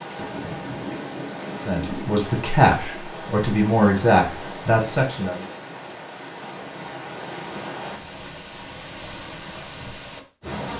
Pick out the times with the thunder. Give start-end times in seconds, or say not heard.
0.1-2.2.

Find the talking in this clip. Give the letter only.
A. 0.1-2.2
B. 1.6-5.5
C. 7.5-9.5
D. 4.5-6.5
B.